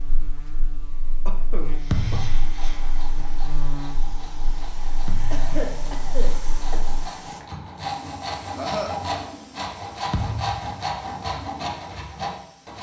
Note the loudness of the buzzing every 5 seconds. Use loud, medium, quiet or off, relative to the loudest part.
loud, loud, off.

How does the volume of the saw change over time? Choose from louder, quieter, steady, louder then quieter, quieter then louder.
louder.